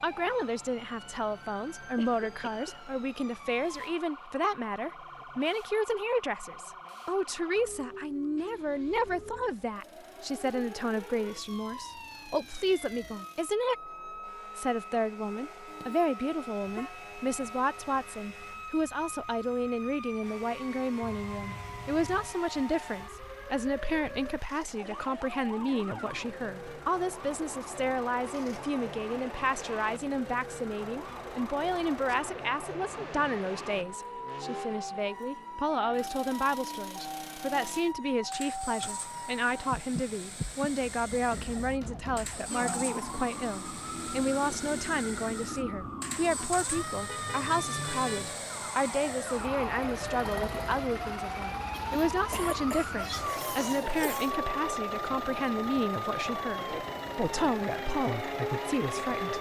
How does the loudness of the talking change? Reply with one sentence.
The loudness of the talking stays about the same.